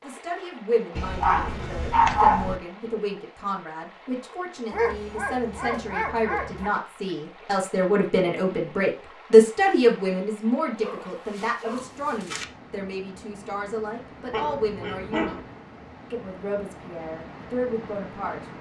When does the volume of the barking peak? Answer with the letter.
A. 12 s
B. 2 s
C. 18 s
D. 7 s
B.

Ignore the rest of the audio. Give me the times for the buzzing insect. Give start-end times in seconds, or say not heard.
not heard.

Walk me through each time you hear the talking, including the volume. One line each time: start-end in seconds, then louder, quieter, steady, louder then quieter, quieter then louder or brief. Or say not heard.
0.0-15.3 louder then quieter
16.1-18.5 brief.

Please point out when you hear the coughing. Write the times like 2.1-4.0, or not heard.
not heard.